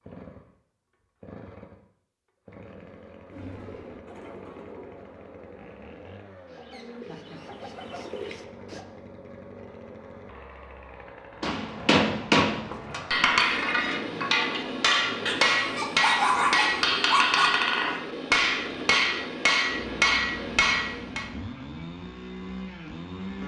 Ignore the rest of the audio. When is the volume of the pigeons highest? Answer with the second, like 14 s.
8 s.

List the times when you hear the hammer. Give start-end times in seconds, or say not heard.
11.4-21.2.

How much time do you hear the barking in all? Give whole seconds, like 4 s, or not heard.
2 s.